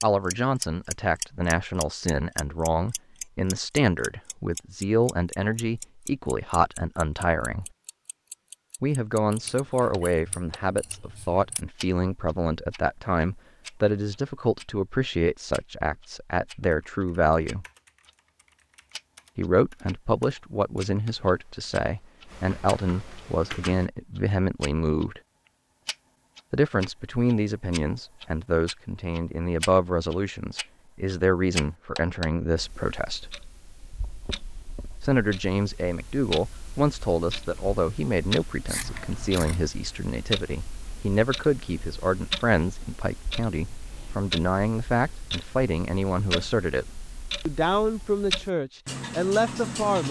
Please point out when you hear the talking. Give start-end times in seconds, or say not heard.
0.0-7.7, 8.8-17.6, 19.4-25.2, 26.5-33.2, 35.0-46.9, 47.5-50.0.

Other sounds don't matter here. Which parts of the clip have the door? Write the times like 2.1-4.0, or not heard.
not heard.